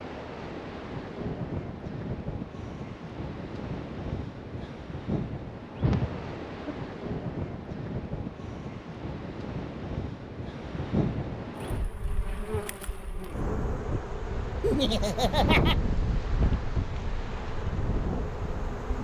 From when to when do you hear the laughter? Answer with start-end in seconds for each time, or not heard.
5.8-6.8, 14.6-15.8.